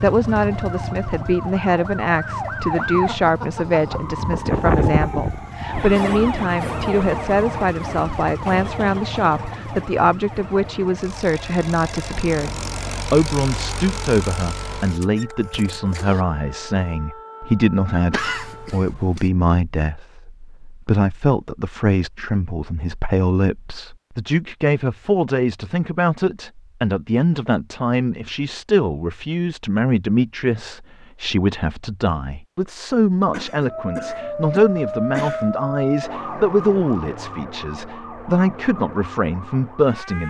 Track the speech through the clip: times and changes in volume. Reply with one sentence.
The speech can be heard from 0.0 to 40.2 s, at a steady volume.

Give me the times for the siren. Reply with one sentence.
The siren can be heard from 0.1 to 18.9 s and from 33.6 to 40.2 s.